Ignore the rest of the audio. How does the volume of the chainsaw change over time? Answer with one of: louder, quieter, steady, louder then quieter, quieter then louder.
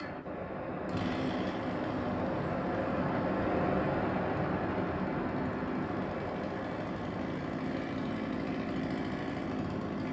quieter then louder.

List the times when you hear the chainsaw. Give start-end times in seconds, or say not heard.
0.0-10.0.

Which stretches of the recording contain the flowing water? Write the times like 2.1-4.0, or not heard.
0.0-10.0.